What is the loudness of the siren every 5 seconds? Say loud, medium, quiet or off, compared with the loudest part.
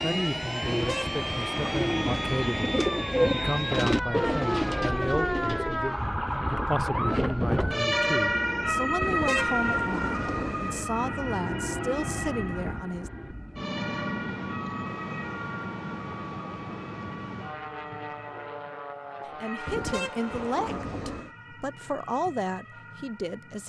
medium, loud, medium, quiet, quiet.